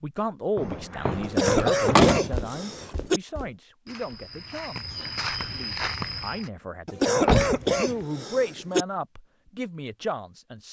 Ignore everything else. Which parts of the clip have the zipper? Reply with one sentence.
You can't hear the zipper here.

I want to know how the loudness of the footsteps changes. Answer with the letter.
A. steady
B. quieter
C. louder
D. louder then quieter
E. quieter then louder
E.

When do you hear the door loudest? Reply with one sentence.
The volume of the door peaks at 2 seconds.